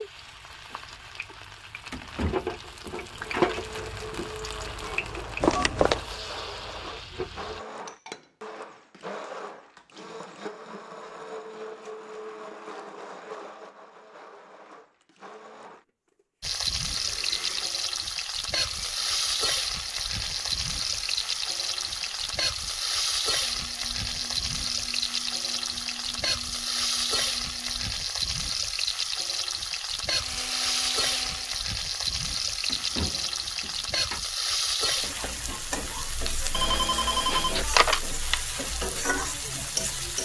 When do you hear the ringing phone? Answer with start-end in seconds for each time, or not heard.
5.4-6.0, 36.5-38.4.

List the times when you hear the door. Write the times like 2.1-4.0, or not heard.
1.9-3.2, 32.6-34.2.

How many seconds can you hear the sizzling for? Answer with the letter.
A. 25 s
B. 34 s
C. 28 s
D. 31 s
D.